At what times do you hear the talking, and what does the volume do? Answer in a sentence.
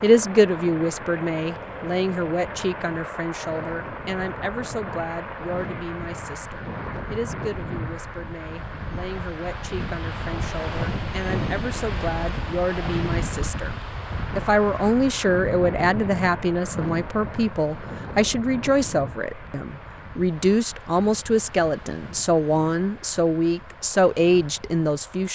You can hear the talking from 0.0 to 25.3 s, getting quieter then louder.